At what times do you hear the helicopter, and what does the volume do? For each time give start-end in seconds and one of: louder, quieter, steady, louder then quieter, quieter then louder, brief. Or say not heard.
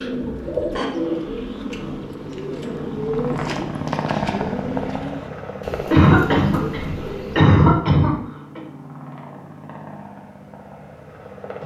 0.0-11.6 louder then quieter.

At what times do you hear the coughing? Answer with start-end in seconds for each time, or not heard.
0.2-0.8, 5.9-8.6.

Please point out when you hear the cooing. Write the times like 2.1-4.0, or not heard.
0.0-7.5.